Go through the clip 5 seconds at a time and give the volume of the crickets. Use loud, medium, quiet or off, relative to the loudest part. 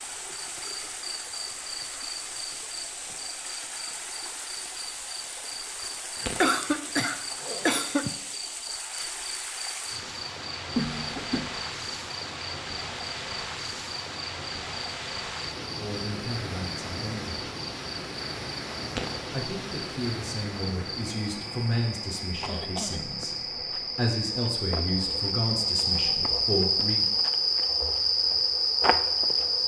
quiet, quiet, quiet, quiet, medium, loud.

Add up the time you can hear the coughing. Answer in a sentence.
The coughing can be heard for 3 seconds in total.